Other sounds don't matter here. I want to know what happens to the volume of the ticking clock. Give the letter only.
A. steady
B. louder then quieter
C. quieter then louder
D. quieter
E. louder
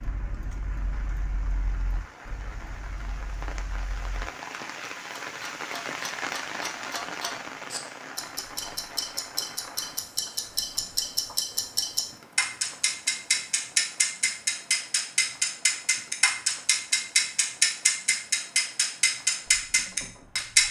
E.